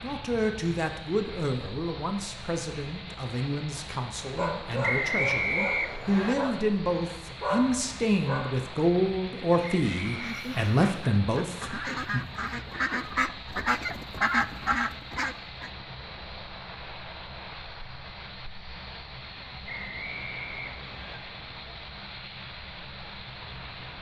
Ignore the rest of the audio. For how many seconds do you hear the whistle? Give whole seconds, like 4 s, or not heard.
4 s.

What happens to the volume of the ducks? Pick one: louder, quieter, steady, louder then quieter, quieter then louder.
louder.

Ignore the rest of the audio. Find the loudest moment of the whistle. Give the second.
5 s.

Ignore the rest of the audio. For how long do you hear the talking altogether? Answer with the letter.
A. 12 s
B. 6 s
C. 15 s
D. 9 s
A.